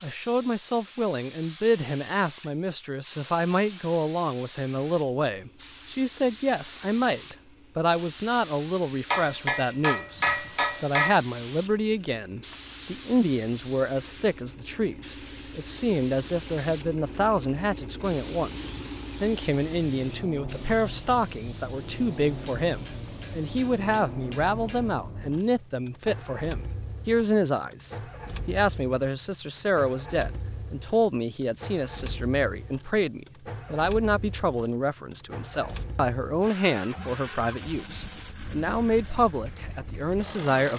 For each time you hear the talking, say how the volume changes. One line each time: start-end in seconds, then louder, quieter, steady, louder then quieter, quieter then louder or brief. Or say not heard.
0.0-40.7 steady.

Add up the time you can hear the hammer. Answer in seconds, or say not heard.
5 s.